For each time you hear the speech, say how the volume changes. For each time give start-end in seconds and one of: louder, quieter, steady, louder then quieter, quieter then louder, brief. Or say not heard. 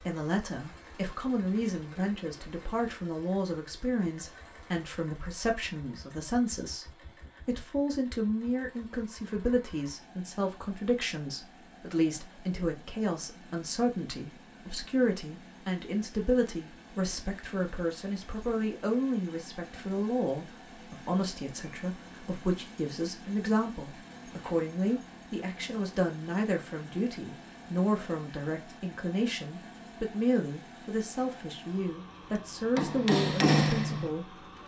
0.1-34.4 steady.